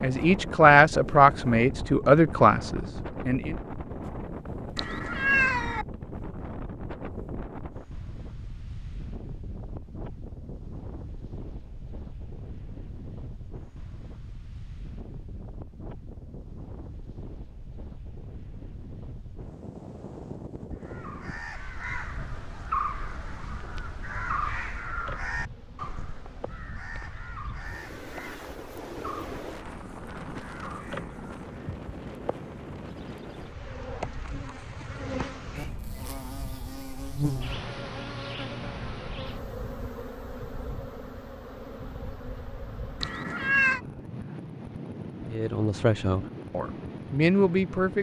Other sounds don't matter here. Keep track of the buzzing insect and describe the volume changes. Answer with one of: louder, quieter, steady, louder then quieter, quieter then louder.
louder then quieter.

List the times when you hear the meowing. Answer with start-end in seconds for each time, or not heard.
4.8-5.8, 43.0-43.8.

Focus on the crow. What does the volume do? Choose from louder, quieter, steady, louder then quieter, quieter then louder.
quieter.